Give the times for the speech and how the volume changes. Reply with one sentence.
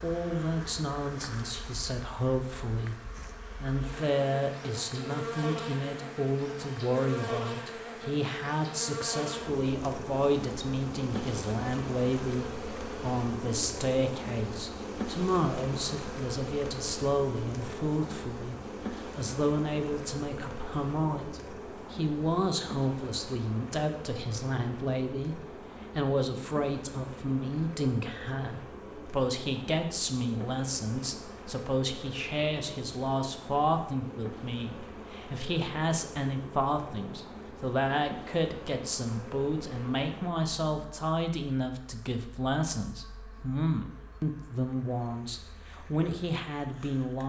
You can hear the speech from 0.0 to 47.2 s, at a steady volume.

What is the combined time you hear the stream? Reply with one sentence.
The stream can't be heard in this clip.